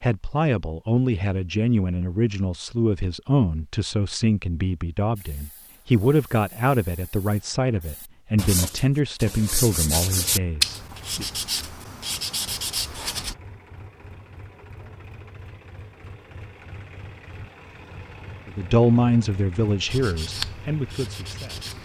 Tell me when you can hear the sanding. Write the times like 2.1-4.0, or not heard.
5.2-13.3, 19.9-21.8.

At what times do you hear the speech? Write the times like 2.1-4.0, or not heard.
0.0-11.2, 18.4-21.6.